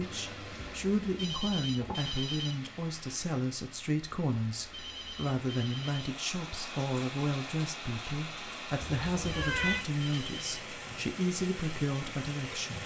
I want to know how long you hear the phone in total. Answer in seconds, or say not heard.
4 s.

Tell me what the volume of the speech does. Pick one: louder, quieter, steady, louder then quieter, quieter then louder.
steady.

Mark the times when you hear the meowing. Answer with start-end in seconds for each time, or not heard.
8.8-9.8.